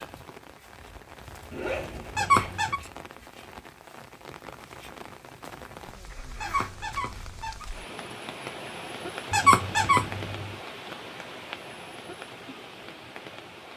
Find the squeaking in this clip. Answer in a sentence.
You can hear the squeaking from 2.1 to 2.8 s, from 6.4 to 7.7 s and from 9.3 to 10.2 s.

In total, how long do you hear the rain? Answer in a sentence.
The rain can be heard for 14 seconds in total.